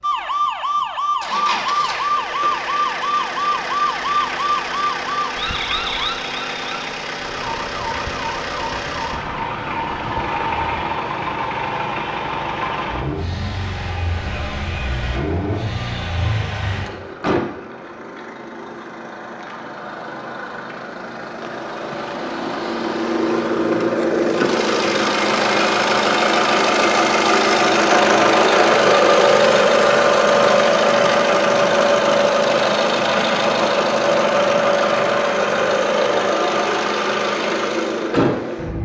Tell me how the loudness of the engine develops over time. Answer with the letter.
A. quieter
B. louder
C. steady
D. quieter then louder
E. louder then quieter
B.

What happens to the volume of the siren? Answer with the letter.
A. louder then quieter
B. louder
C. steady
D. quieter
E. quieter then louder
D.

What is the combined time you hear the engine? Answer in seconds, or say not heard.
39 s.